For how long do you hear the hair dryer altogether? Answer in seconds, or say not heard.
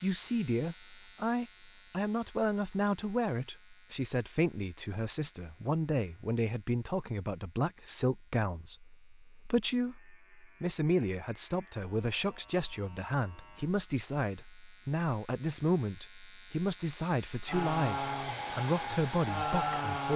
3 s.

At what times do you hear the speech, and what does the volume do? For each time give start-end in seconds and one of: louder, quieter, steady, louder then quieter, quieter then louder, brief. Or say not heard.
0.0-20.1 steady.